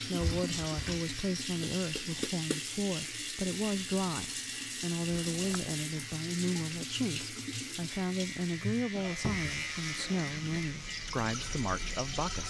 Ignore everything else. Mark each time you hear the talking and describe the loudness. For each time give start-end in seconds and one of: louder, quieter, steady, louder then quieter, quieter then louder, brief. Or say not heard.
0.0-12.4 steady.